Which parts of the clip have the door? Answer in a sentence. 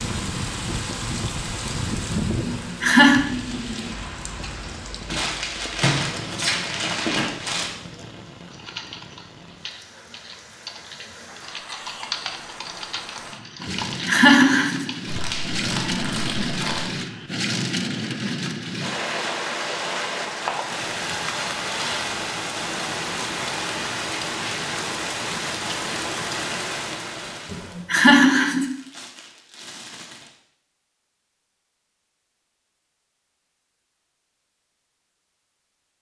The door can't be heard in this clip.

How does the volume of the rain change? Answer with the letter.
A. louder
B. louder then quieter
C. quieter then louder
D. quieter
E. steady
C.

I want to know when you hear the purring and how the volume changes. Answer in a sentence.
The purring can't be heard in this clip.